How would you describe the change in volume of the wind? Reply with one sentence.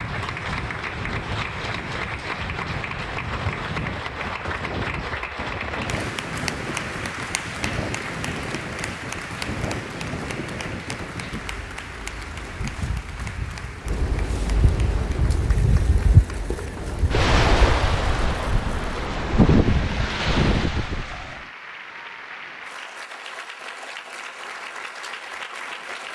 The volume of the wind goes up.